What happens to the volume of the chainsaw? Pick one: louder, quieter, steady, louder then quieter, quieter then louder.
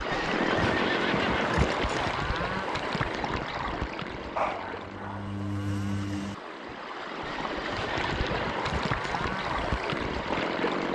quieter then louder.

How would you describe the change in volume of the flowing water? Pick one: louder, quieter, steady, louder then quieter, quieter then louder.
quieter then louder.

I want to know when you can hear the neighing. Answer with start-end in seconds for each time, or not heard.
0.1-2.1, 7.2-9.0.